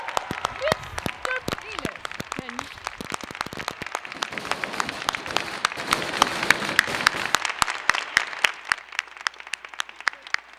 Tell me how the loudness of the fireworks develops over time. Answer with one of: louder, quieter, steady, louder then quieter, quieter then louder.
quieter then louder.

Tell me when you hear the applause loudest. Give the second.
7 s.